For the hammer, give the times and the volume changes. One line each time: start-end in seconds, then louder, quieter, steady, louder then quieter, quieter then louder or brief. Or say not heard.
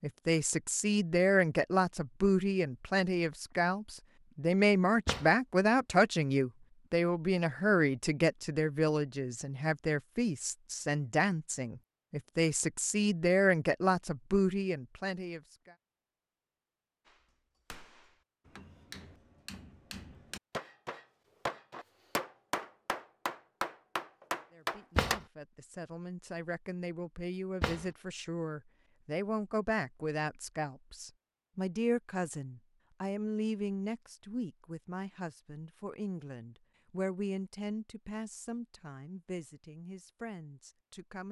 17.1-25.2 louder.